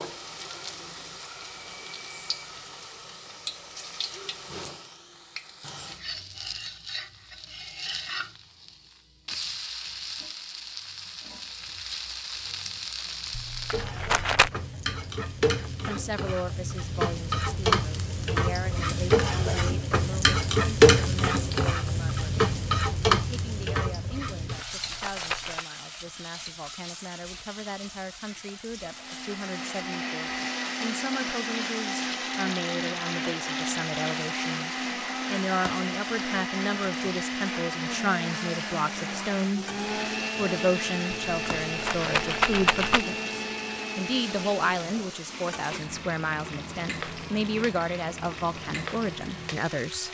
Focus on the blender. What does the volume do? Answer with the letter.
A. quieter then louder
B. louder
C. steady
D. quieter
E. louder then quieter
D.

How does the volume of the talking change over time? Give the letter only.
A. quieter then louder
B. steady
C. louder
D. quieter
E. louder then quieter
C.